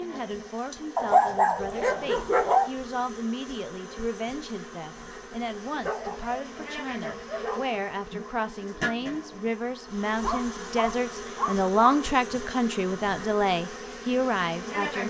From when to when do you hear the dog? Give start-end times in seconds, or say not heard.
0.9-2.7, 5.8-7.8, 10.2-12.1.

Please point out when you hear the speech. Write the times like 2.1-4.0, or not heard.
0.0-15.0.